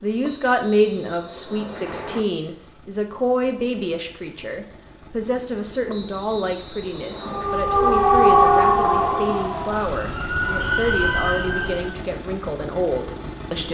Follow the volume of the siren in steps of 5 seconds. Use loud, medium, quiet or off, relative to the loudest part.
off, loud, medium.